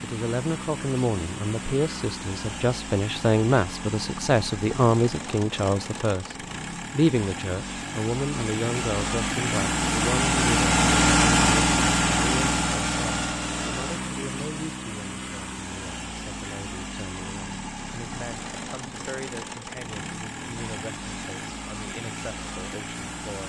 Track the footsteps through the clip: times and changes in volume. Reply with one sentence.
You can't hear the footsteps here.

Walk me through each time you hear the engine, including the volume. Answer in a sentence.
You can hear the engine from 0.0 to 23.4 s, getting louder then quieter.